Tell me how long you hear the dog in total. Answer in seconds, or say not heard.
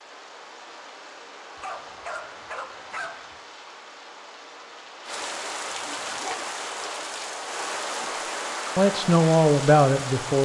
3 s.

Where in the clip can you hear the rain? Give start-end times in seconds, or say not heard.
0.0-10.4.